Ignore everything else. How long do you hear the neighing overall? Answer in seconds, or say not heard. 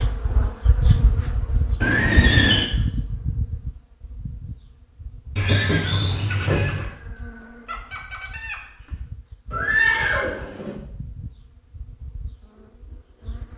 4 s.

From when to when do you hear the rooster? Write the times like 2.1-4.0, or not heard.
6.2-9.0.